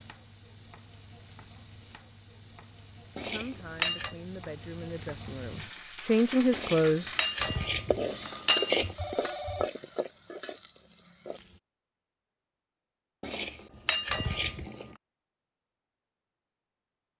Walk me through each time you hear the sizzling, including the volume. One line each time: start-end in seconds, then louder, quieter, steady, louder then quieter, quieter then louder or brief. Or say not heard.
0.0-11.6 louder then quieter.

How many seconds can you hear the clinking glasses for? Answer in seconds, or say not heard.
5 s.